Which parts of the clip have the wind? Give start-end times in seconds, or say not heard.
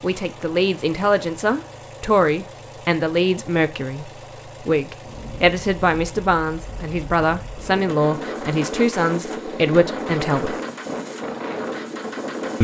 5.0-12.5.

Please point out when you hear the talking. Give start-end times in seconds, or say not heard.
0.0-10.6.